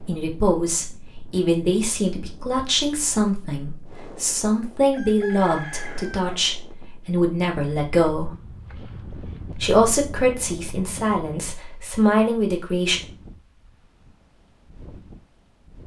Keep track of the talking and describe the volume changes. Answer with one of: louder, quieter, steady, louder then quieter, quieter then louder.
steady.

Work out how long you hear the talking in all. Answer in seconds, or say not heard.
12 s.